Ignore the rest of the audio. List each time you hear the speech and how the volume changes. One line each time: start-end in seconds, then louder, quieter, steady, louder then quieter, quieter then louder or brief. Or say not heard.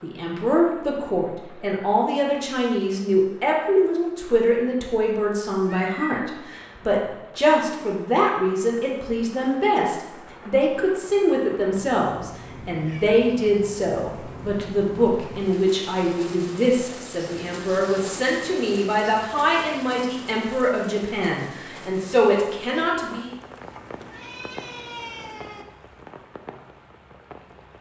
0.0-23.3 steady.